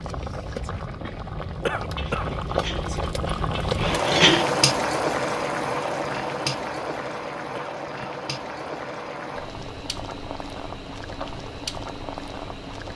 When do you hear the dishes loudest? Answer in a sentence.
The volume of the dishes peaks at 4 seconds.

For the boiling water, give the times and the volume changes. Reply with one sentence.
The boiling water can be heard from 0.0 to 12.9 s, getting louder then quieter.